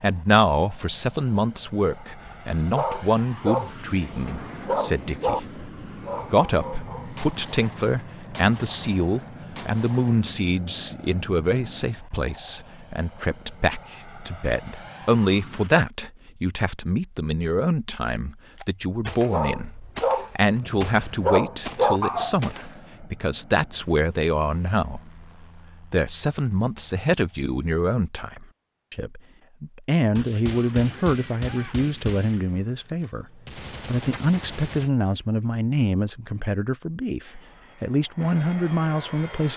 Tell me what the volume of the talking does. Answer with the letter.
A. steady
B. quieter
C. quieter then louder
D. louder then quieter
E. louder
A.